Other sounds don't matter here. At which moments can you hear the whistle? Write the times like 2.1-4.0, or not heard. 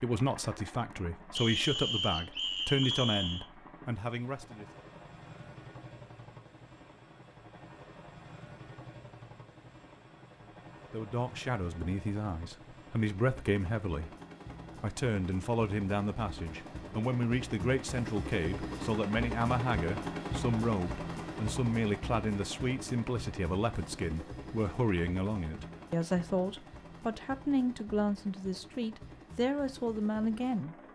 1.4-3.5.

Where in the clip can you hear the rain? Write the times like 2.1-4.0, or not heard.
not heard.